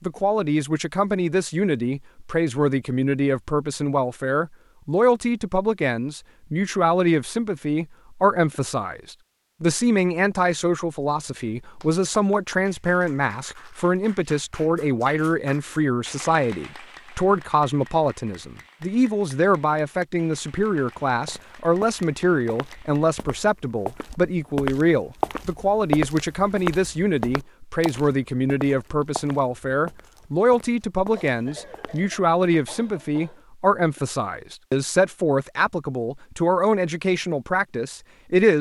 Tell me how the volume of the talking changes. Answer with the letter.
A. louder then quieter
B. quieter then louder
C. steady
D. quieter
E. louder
C.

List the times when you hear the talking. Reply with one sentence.
The talking can be heard from 0.0 to 38.5 s.